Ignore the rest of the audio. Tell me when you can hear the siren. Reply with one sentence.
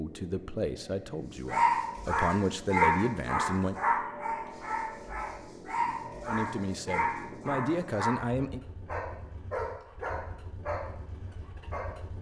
The siren can't be heard in this clip.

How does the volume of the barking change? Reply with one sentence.
The volume of the barking goes down.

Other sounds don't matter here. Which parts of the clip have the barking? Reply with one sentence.
The barking can be heard from 1.4 to 11.9 s.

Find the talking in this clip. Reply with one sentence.
You can hear the talking from 0.0 to 3.8 s and from 6.2 to 8.6 s.